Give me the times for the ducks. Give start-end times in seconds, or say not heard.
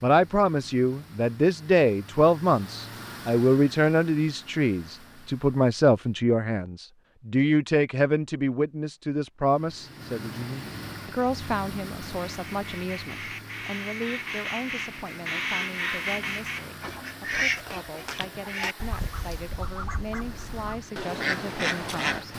12.2-22.2.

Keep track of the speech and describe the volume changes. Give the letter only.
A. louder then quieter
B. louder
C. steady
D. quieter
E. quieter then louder
D.